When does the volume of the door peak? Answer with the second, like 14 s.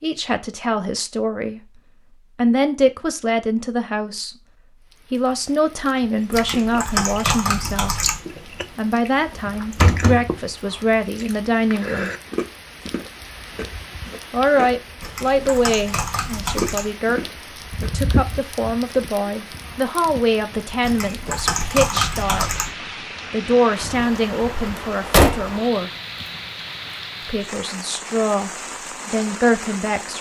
25 s.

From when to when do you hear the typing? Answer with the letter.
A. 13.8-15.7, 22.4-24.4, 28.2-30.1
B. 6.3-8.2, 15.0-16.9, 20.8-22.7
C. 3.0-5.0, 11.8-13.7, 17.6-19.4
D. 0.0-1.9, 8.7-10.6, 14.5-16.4
B.